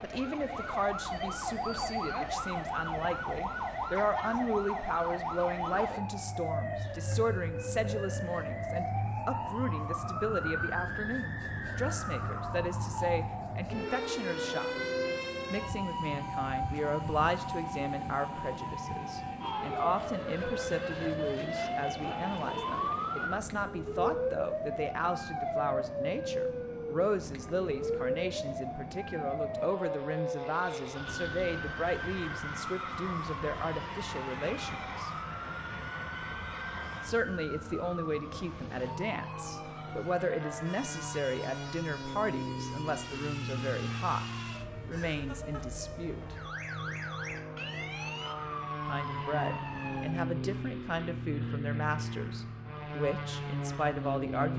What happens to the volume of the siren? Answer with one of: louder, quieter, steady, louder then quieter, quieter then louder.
quieter.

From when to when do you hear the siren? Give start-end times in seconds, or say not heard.
0.0-50.2.